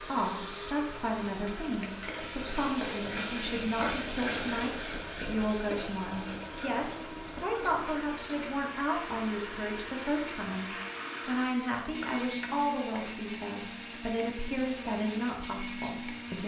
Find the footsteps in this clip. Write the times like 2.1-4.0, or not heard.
not heard.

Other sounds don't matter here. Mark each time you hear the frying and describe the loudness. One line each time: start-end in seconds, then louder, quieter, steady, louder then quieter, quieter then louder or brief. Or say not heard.
0.0-16.4 quieter.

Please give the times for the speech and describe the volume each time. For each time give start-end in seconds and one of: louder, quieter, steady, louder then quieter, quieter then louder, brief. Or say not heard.
0.1-16.4 steady.